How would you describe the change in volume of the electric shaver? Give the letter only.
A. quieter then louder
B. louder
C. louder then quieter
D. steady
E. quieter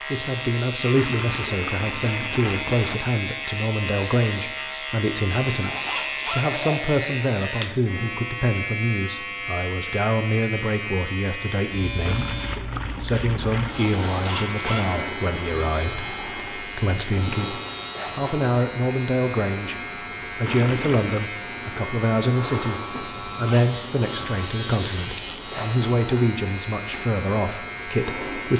D.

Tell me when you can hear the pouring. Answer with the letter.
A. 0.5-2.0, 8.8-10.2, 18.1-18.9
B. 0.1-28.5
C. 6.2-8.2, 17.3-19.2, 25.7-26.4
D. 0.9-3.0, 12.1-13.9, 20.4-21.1
D.